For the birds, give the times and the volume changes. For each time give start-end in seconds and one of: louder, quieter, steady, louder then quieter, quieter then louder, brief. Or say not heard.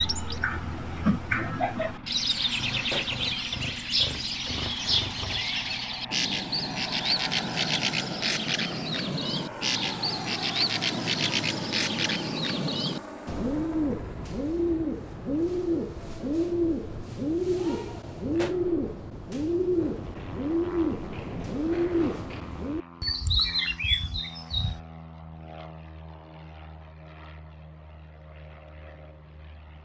0.0-24.8 steady.